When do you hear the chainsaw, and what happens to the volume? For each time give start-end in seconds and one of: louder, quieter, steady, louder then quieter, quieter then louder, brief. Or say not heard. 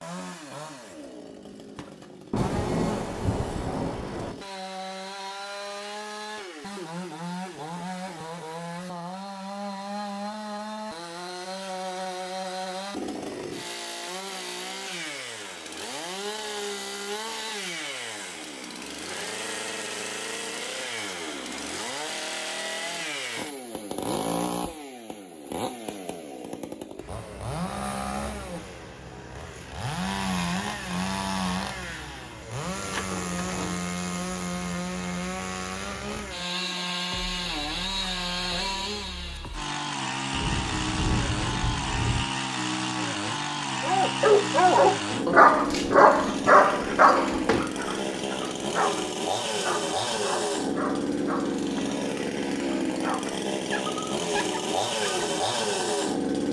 0.0-56.4 louder.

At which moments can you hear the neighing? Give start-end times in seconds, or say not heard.
not heard.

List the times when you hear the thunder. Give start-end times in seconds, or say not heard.
2.3-4.3, 40.3-42.2.